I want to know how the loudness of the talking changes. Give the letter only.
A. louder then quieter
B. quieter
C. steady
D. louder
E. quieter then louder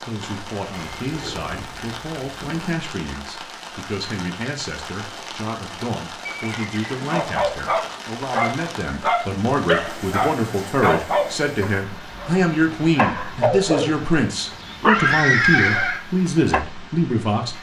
D.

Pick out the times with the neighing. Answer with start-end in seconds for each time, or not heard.
0.7-2.8, 6.2-7.2, 14.5-16.0.